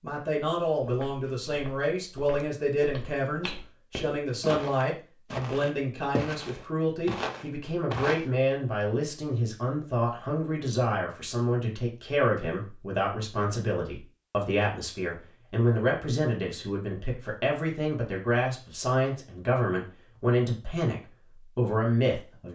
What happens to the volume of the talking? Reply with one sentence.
The loudness of the talking stays about the same.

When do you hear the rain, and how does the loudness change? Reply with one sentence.
You can't hear the rain here.